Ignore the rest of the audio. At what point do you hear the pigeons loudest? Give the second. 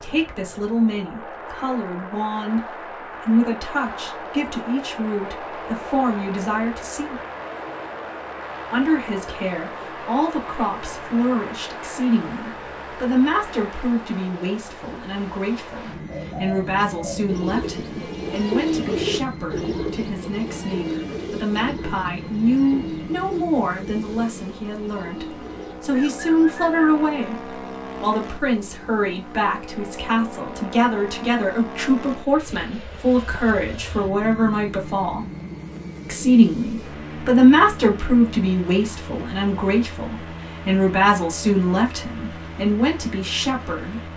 19 s.